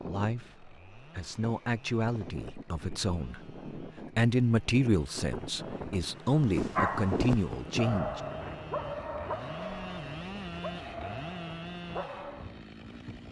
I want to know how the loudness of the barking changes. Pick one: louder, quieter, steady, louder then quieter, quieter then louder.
quieter.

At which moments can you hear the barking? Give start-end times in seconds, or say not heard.
6.4-12.6.